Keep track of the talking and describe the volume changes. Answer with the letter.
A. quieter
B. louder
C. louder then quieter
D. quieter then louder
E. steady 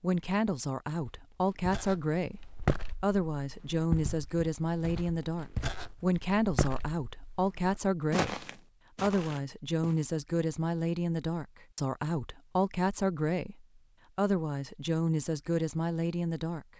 E.